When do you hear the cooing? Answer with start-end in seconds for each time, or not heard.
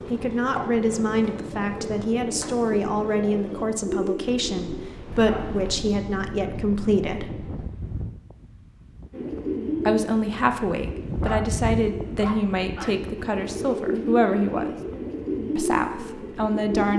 0.0-5.8, 9.1-16.9.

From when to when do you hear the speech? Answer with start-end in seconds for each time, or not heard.
0.1-7.3, 9.8-14.8, 15.6-16.9.